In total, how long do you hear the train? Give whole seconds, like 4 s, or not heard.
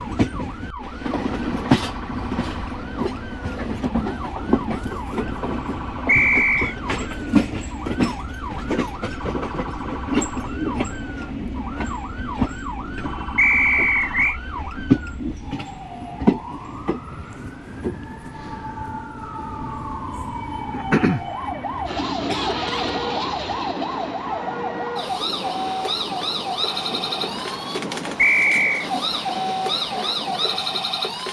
31 s.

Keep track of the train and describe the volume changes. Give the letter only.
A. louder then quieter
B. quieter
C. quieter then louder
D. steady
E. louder
B.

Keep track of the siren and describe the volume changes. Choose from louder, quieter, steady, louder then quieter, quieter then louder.
louder.